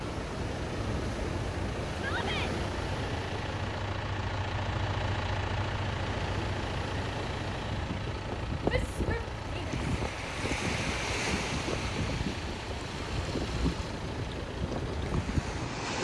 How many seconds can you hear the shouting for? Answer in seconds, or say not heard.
2 s.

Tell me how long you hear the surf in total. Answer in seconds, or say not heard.
16 s.